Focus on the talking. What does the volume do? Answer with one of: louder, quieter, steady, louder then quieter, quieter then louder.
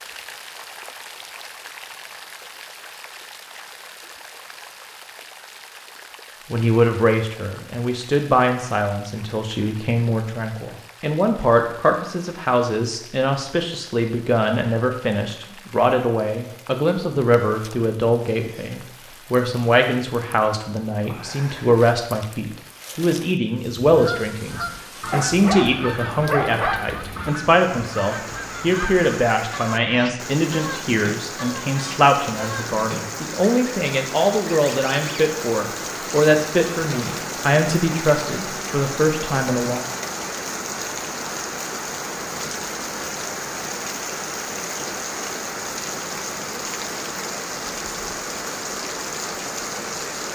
steady.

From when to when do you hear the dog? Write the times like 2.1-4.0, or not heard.
25.1-26.8.